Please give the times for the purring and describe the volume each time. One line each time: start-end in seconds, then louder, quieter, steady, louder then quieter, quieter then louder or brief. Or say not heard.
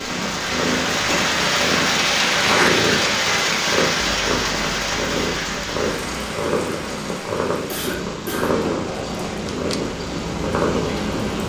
0.0-11.4 steady.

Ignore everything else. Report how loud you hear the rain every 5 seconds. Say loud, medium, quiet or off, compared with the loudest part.
loud, medium, medium.